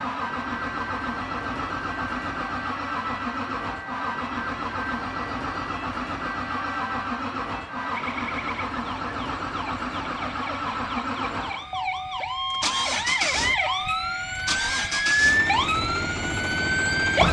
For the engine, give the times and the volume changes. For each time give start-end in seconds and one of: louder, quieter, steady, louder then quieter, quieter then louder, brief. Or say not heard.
0.0-17.2 steady.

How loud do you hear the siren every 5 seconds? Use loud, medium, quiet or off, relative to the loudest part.
quiet, quiet, medium, loud.